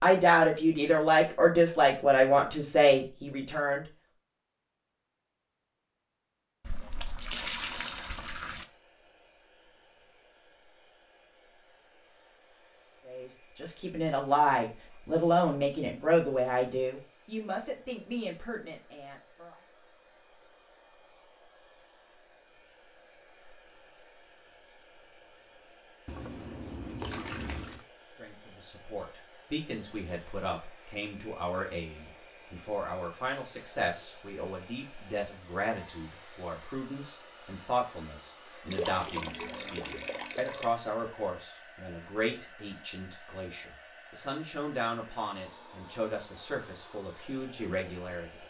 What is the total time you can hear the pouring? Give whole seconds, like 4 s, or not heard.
6 s.